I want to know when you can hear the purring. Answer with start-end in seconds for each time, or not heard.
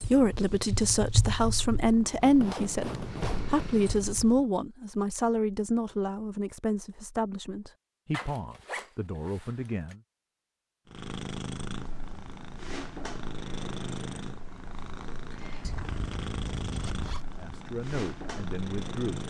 0.0-4.5, 10.8-19.2.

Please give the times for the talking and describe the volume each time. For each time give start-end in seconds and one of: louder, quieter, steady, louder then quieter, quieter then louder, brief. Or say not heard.
0.1-10.0 quieter
17.4-19.2 brief.